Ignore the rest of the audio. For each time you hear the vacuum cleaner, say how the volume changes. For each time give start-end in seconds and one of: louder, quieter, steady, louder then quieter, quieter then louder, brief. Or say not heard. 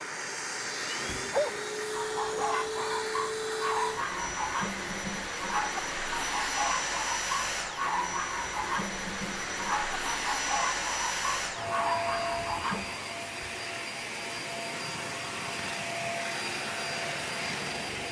0.0-18.0 steady.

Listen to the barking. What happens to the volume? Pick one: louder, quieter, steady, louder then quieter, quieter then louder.
steady.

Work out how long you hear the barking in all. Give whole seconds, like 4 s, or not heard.
12 s.